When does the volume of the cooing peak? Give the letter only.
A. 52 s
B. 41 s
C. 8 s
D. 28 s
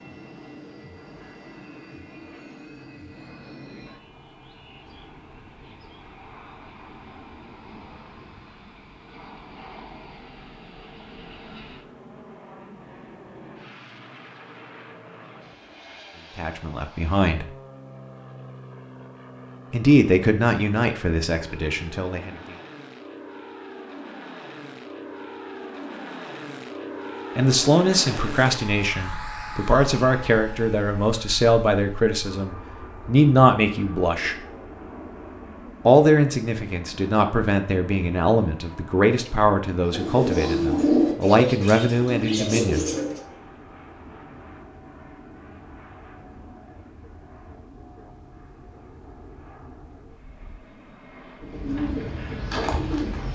B.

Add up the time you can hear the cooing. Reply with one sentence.
You can hear the cooing for 5 seconds altogether.